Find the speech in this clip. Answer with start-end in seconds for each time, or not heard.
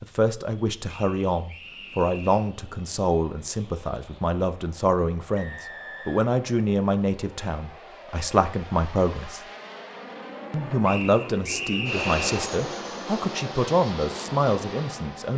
0.0-9.4, 10.5-15.3.